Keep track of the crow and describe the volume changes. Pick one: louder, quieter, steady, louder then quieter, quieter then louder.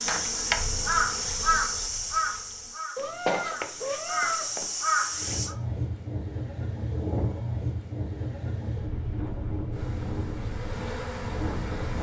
quieter then louder.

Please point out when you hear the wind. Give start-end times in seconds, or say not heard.
5.1-11.9.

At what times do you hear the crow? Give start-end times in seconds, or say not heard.
0.0-5.5.